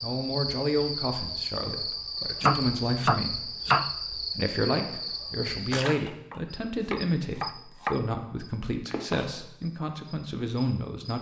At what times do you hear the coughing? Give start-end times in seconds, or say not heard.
not heard.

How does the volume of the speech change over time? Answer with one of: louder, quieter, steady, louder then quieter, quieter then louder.
steady.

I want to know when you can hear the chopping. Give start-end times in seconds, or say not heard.
2.4-3.9, 6.0-8.0.